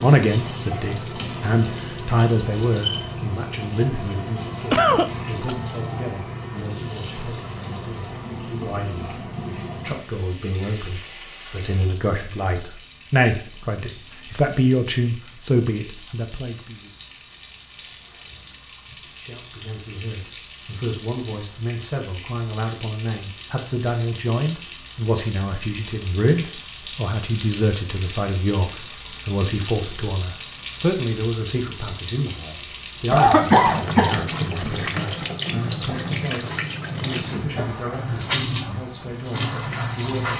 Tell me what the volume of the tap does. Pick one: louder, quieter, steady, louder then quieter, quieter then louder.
quieter then louder.